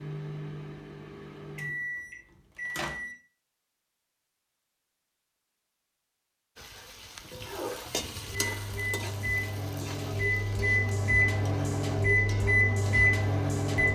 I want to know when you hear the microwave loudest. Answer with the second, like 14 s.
13 s.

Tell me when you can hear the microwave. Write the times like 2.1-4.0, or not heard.
0.0-3.1, 8.2-13.9.